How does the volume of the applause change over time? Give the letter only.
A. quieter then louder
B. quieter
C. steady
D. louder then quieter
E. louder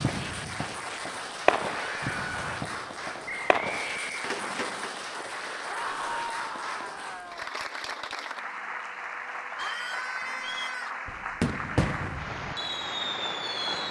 C.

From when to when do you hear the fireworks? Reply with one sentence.
The fireworks can be heard from 0.0 to 5.0 s and from 11.1 to 13.8 s.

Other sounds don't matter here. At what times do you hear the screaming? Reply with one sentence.
The screaming can be heard from 1.7 to 2.5 s, from 5.7 to 7.5 s and from 9.6 to 11.1 s.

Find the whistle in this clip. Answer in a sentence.
The whistle can be heard from 3.2 to 4.3 s and from 9.5 to 10.8 s.